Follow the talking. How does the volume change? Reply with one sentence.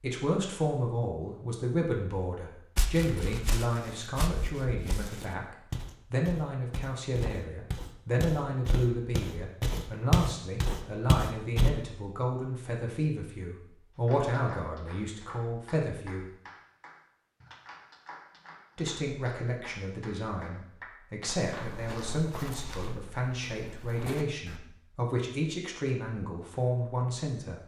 The loudness of the talking stays about the same.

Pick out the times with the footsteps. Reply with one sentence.
The footsteps can be heard from 2.8 to 11.7 s and from 21.2 to 24.6 s.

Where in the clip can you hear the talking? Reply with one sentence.
You can hear the talking from 0.0 to 16.3 s and from 18.8 to 27.6 s.